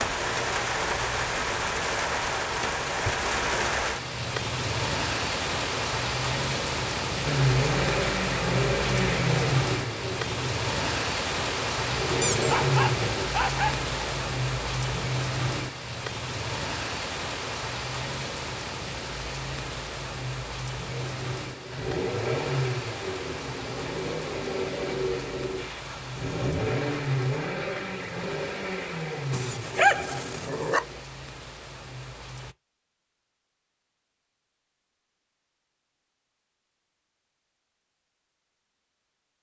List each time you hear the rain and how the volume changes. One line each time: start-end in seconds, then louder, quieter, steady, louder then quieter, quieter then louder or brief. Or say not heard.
0.0-32.5 quieter.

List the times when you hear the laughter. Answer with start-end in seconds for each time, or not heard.
not heard.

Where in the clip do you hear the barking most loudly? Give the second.
30 s.